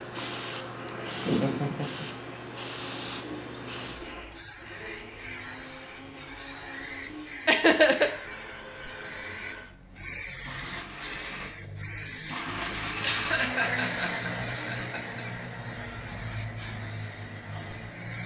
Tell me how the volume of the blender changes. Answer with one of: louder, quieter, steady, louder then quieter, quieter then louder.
louder then quieter.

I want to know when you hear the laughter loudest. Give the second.
8 s.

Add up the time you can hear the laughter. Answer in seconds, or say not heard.
4 s.